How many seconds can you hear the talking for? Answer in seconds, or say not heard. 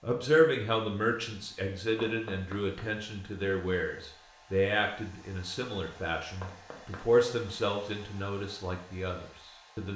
10 s.